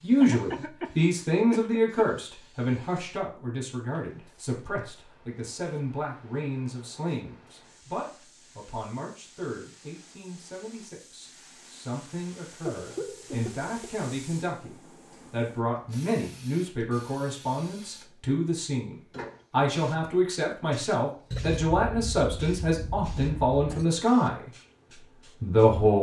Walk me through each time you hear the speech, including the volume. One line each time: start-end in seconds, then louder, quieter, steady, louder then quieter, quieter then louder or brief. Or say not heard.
0.0-24.5 quieter then louder
25.4-25.9 brief.